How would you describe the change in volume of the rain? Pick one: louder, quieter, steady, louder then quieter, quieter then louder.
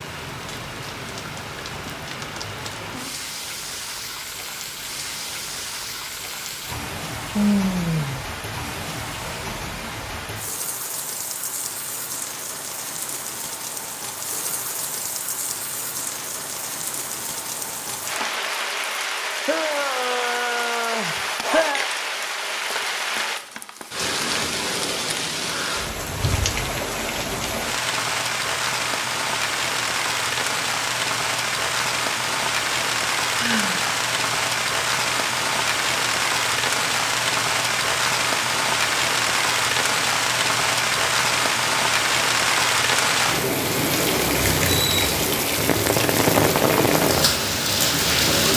louder.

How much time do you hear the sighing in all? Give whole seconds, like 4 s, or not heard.
4 s.